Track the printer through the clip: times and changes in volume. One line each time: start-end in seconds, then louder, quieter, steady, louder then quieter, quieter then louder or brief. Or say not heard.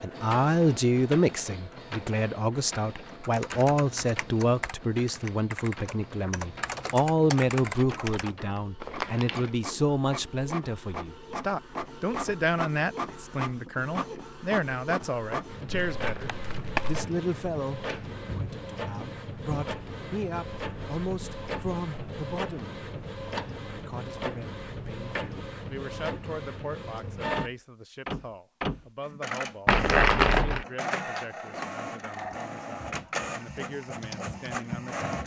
0.0-35.2 louder.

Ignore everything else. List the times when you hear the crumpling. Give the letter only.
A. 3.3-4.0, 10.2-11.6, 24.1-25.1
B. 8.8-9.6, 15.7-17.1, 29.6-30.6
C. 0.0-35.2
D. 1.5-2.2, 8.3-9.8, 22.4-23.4
B.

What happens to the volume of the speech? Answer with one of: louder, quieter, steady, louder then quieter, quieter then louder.
quieter.